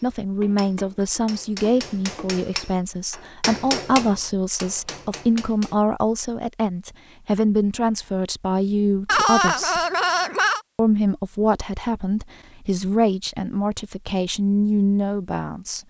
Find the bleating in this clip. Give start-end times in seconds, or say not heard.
9.1-10.6.